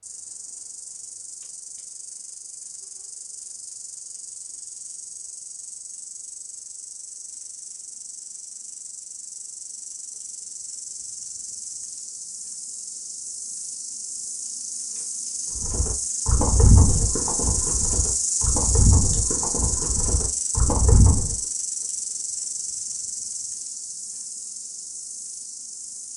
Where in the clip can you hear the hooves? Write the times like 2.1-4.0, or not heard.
15.6-21.4.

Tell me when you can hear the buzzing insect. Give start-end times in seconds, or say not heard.
0.0-26.1.